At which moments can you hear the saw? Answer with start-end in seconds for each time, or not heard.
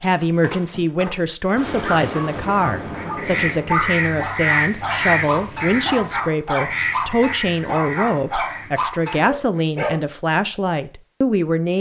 not heard.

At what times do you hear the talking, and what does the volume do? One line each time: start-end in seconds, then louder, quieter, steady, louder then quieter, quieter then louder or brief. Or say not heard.
0.0-11.7 steady.